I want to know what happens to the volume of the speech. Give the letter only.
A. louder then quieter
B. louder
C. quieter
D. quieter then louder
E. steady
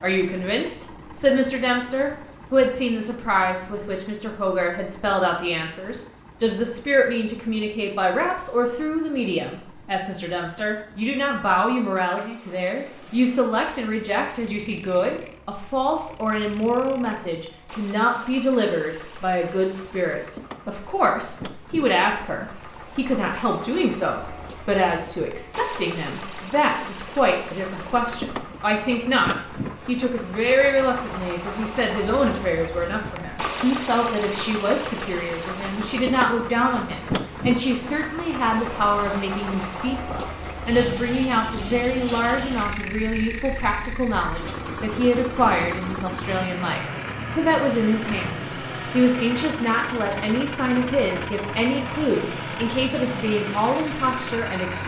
E.